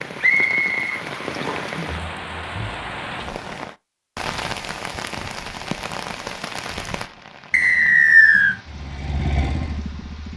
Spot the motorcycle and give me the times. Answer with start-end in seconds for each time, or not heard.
8.7-10.3.